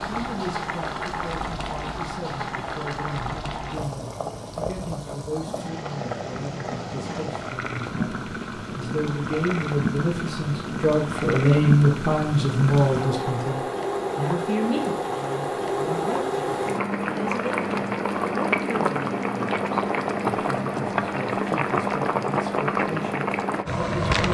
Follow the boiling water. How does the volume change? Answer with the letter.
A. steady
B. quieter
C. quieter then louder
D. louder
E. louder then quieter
D.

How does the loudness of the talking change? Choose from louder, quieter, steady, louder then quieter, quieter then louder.
louder then quieter.